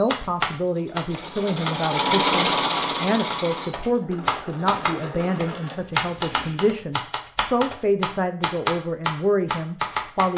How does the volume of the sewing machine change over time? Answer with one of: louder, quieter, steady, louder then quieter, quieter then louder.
louder then quieter.